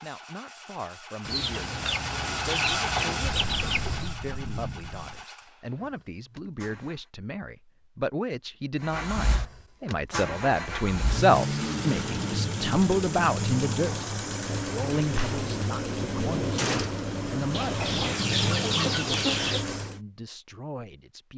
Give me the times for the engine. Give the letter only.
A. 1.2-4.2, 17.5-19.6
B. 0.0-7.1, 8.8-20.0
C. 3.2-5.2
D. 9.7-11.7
B.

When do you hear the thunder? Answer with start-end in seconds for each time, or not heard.
3.2-5.2.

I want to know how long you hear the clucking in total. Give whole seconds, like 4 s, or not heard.
5 s.